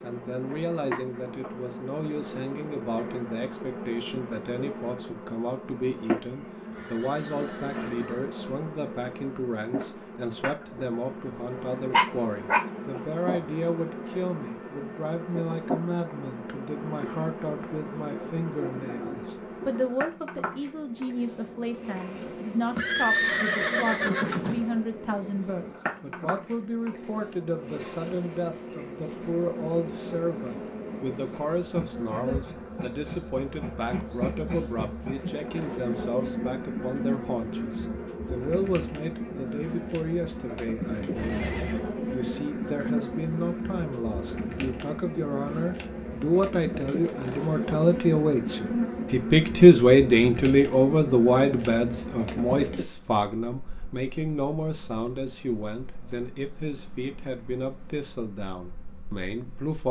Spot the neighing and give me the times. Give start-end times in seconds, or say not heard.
6.7-8.3, 22.8-24.6, 41.1-41.9.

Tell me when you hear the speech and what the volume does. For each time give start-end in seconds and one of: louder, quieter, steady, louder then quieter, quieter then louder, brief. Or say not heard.
0.0-59.8 louder.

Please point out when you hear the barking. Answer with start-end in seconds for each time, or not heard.
11.9-13.0.